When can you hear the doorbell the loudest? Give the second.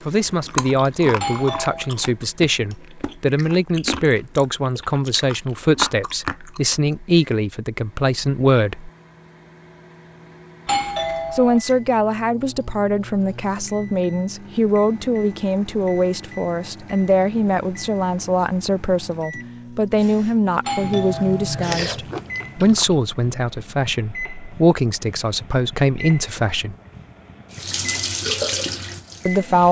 11 s.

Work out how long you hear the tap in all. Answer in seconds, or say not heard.
2 s.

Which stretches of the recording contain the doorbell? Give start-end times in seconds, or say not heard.
1.2-1.9, 10.7-11.6, 20.6-21.7.